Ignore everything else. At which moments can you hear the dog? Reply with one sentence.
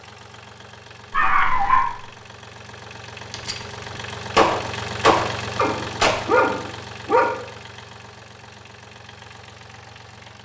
You can hear the dog from 1.1 to 1.9 s and from 5.5 to 7.3 s.